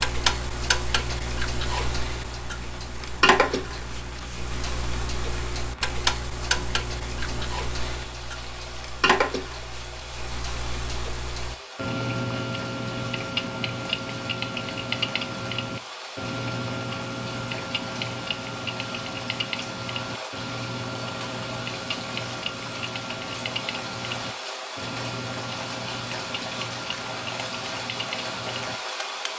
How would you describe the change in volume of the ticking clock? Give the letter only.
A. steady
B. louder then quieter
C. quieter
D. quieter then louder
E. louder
C.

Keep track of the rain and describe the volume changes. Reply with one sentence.
The loudness of the rain goes up.